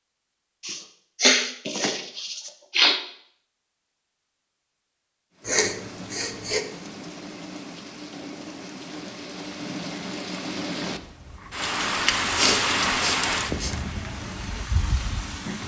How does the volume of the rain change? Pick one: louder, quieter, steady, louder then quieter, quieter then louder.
louder then quieter.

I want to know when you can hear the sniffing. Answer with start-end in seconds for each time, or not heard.
0.6-3.0, 5.5-6.7, 12.3-13.8.